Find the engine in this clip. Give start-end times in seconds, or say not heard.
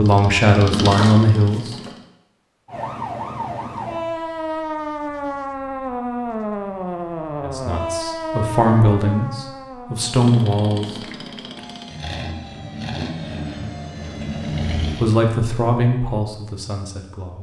0.0-2.0, 10.1-15.2.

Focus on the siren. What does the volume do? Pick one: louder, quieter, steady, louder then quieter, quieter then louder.
quieter.